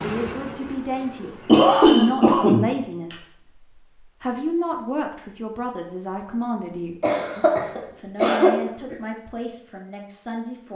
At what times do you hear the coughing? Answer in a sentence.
The coughing can be heard from 1.2 to 3.1 s and from 7.0 to 8.9 s.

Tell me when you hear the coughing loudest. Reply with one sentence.
The volume of the coughing peaks at 2 seconds.